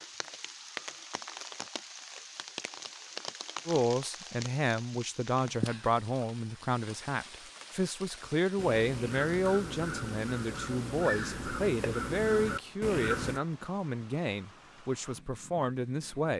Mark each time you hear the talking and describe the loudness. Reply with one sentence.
You can hear the talking from 3.6 to 16.3 s, at a steady volume.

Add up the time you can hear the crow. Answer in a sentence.
You can hear the crow for 5 seconds altogether.